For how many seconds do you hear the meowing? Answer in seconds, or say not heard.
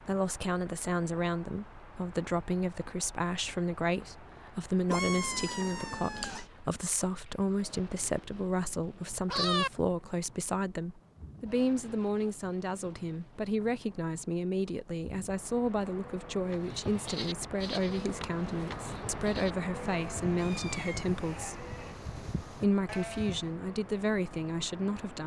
3 s.